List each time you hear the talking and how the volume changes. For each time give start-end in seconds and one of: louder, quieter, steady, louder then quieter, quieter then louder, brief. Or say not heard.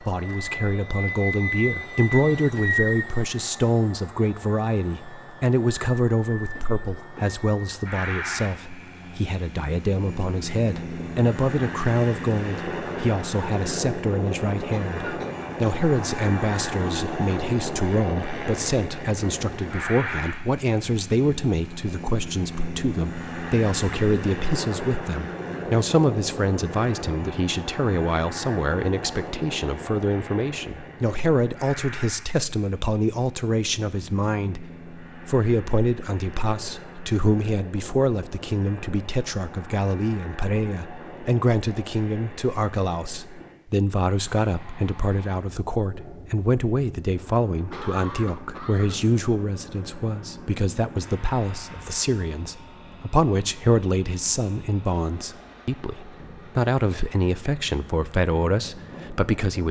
0.0-59.6 steady.